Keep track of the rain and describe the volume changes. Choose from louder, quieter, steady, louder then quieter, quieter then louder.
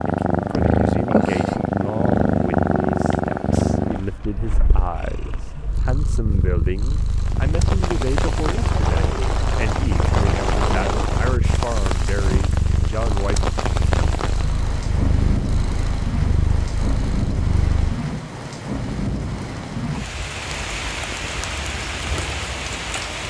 steady.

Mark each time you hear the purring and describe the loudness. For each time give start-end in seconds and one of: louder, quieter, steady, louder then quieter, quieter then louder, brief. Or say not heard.
0.0-18.0 quieter.